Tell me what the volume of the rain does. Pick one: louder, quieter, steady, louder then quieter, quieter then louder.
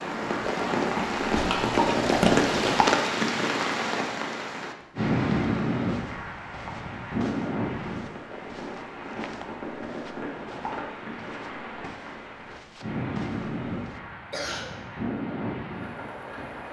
quieter.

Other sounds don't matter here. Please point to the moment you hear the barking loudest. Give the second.
2 s.